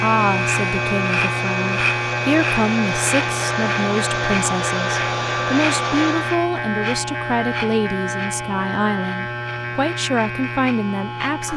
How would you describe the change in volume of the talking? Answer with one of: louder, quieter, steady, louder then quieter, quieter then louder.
steady.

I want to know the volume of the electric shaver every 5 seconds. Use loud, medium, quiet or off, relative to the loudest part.
loud, loud, medium.